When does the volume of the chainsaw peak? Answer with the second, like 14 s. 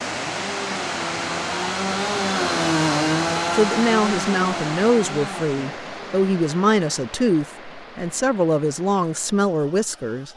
3 s.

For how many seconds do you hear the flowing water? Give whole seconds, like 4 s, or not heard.
10 s.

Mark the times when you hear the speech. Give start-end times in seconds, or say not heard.
3.5-10.3.